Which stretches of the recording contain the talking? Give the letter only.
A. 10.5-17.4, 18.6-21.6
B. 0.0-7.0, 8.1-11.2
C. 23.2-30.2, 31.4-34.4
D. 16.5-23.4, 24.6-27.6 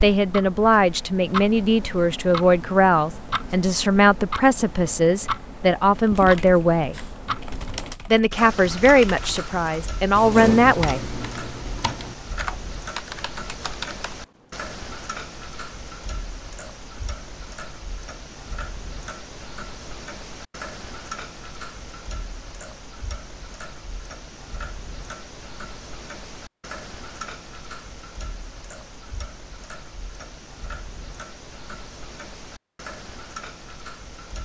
B.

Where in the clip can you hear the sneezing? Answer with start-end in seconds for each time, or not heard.
not heard.